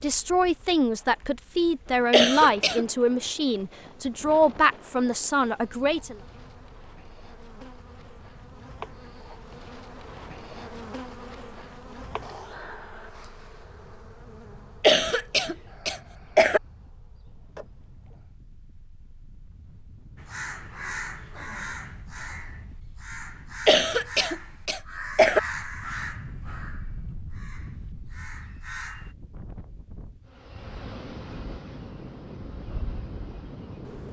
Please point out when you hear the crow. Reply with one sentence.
You can hear the crow from 20.1 to 29.1 s.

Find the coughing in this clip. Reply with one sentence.
You can hear the coughing from 2.1 to 2.9 s, from 14.8 to 16.6 s and from 23.6 to 25.4 s.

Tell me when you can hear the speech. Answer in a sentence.
You can hear the speech from 0.0 to 6.2 s.